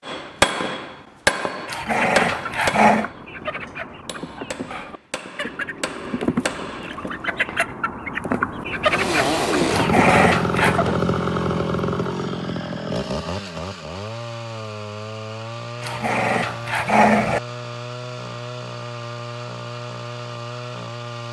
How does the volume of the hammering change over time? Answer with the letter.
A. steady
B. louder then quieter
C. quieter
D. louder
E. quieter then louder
E.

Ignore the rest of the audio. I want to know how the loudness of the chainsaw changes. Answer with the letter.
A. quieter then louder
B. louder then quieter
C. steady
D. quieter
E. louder
D.